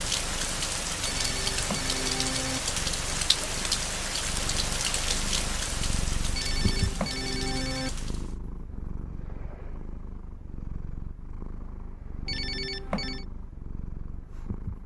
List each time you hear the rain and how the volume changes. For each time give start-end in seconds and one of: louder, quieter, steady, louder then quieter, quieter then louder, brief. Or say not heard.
0.0-8.3 quieter.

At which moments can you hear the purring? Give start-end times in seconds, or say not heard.
0.0-14.8.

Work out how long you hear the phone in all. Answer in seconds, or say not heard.
4 s.